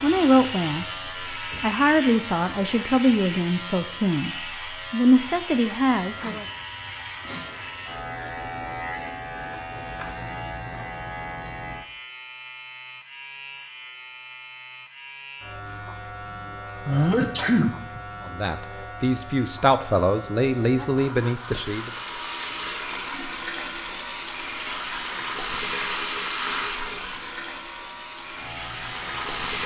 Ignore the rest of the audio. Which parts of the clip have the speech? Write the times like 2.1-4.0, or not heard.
0.0-6.5, 18.2-21.9.